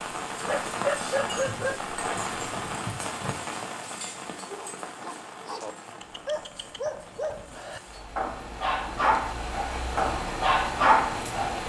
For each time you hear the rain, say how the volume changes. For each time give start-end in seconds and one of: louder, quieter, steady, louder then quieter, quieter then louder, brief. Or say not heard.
0.0-11.6 quieter then louder.